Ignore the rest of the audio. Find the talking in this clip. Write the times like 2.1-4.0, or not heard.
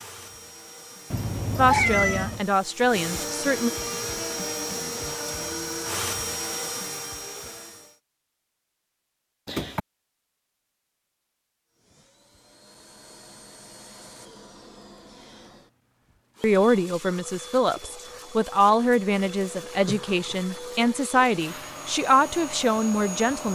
1.6-3.7, 16.4-23.5.